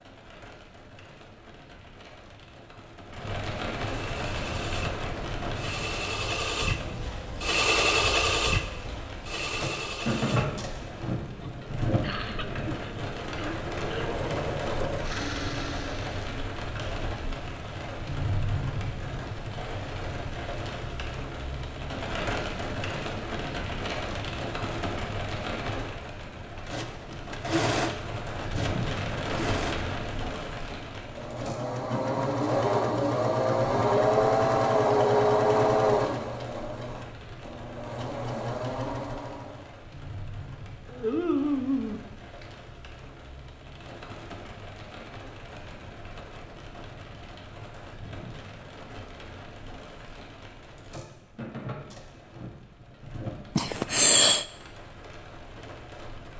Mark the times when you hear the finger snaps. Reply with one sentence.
You can hear the finger snaps from 40.9 to 42.5 s.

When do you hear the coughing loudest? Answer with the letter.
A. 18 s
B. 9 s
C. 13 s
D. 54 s
D.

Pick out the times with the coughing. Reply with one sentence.
The coughing can be heard from 12.0 to 14.2 s and from 53.5 to 54.5 s.